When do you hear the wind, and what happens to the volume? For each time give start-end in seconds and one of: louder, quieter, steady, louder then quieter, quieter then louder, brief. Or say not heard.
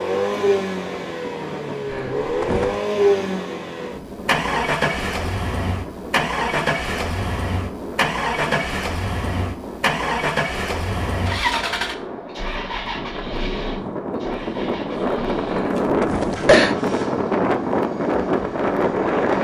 0.0-19.3 louder.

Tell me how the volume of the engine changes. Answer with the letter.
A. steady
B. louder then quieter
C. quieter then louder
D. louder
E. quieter
E.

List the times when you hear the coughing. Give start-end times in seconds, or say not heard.
1.9-2.8, 15.5-16.8.